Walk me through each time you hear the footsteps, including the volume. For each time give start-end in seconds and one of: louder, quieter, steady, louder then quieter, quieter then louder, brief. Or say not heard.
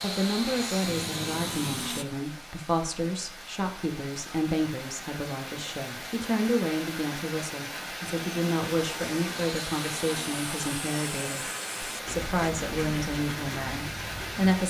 not heard.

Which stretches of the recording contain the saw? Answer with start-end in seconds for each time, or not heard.
0.0-2.0, 8.1-14.6.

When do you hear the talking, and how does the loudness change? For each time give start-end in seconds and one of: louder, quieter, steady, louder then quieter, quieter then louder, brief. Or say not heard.
0.0-14.6 steady.